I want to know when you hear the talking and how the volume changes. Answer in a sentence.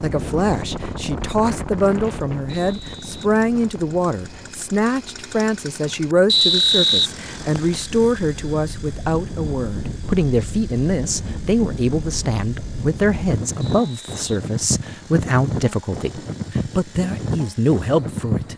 The talking can be heard from 0.0 to 18.5 s, at a steady volume.